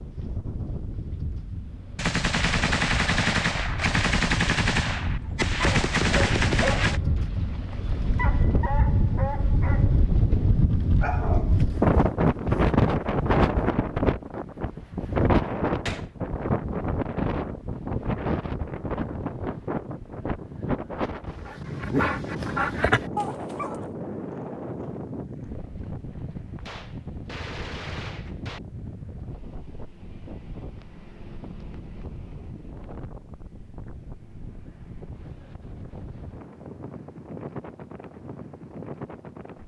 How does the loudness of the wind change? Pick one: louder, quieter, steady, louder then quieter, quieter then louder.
louder then quieter.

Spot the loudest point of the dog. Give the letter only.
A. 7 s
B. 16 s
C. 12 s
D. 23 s
D.